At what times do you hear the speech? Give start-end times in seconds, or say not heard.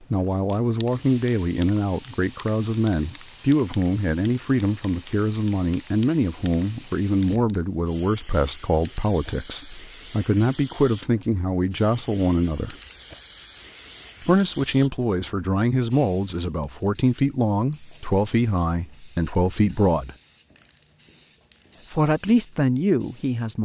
0.1-12.8, 14.2-20.1, 21.9-23.6.